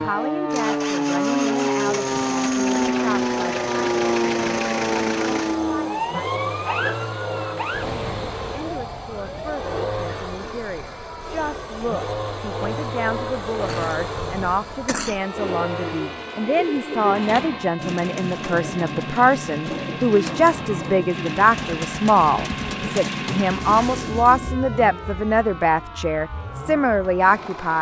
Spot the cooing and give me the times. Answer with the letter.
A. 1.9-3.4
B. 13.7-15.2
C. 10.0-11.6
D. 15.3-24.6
D.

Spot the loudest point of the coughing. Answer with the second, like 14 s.
15 s.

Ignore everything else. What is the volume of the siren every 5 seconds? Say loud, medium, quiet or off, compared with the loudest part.
loud, medium, quiet, quiet, quiet, quiet.